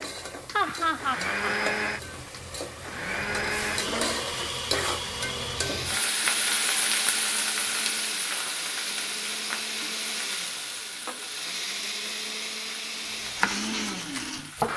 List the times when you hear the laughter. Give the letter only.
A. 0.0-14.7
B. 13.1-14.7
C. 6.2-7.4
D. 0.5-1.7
D.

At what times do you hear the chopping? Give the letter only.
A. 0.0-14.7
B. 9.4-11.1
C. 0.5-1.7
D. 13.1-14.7
D.